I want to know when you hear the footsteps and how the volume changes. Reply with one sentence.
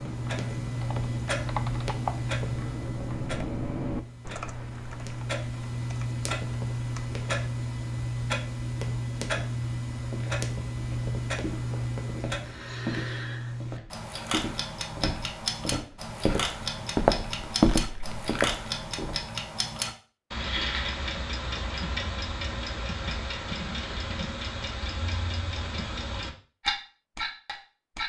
The footsteps can be heard from 9.9 to 19.2 s, getting louder.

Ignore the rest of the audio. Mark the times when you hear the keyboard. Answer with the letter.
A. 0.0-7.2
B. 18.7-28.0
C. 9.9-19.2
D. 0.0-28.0
A.